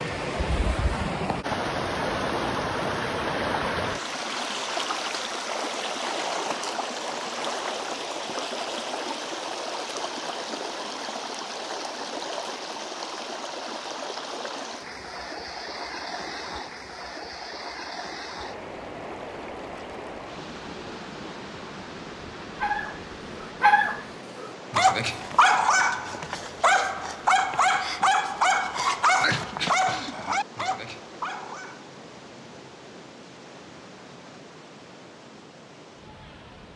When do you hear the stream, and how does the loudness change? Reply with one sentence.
You can hear the stream from 0.0 to 36.7 s, getting quieter.